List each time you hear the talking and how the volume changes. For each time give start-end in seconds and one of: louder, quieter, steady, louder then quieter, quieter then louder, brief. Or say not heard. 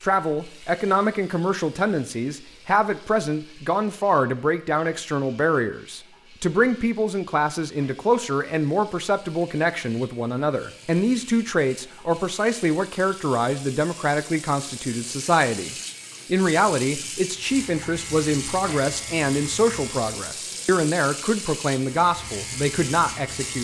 0.0-23.5 steady.